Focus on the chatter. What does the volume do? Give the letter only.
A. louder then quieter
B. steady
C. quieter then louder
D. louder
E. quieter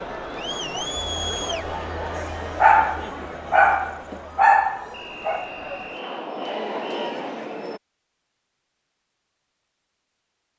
C.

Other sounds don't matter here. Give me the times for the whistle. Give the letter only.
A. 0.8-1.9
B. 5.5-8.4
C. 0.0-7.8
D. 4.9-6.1
D.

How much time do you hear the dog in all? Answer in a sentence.
The dog can be heard for 3 seconds in total.